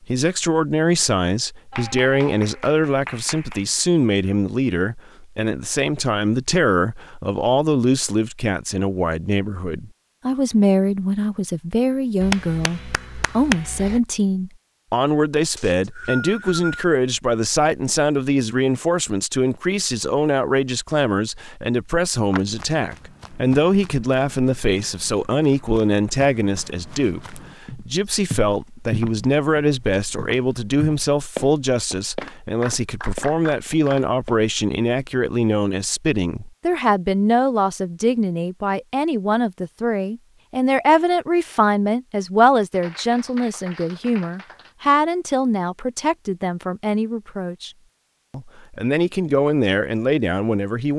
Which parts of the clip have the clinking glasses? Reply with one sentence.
The clinking glasses can't be heard in this clip.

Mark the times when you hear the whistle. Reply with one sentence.
You can hear the whistle from 15.6 to 16.9 s.